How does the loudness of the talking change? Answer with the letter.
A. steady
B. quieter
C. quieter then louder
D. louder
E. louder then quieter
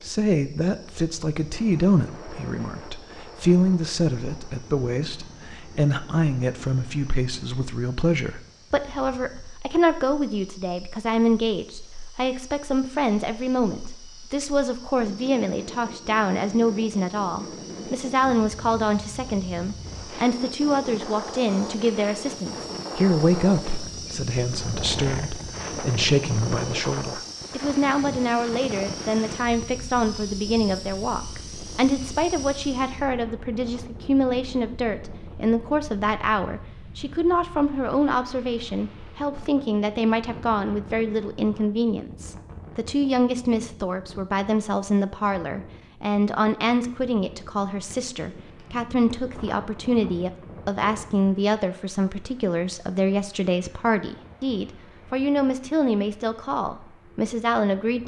A.